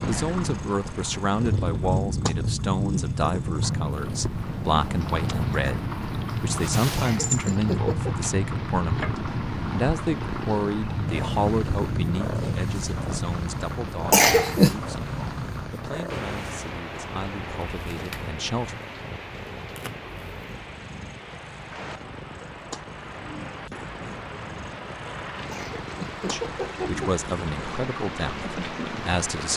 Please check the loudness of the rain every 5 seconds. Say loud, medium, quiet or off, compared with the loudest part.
loud, loud, loud, medium, medium, medium.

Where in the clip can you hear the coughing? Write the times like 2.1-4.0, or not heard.
7.0-8.2, 14.1-14.8, 25.5-27.1.